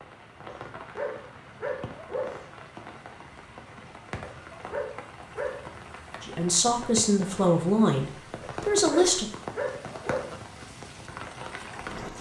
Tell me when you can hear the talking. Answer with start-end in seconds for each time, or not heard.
6.2-9.3.